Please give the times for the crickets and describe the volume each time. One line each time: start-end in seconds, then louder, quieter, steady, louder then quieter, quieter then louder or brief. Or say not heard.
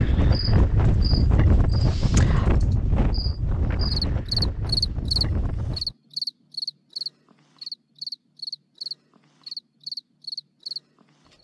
0.1-11.3 louder then quieter.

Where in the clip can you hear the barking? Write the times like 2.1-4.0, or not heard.
not heard.